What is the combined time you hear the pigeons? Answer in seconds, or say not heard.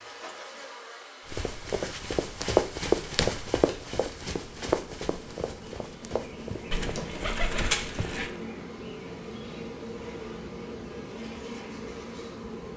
2 s.